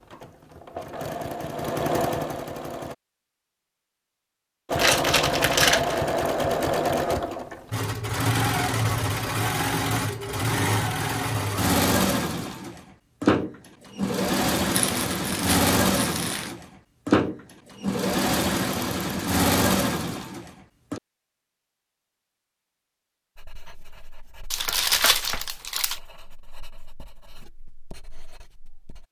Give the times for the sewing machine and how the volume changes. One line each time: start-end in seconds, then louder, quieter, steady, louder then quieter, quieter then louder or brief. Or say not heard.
0.0-3.0 brief
4.7-21.0 steady.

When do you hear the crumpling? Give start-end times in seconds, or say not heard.
4.8-6.0, 14.8-16.6, 24.5-26.0.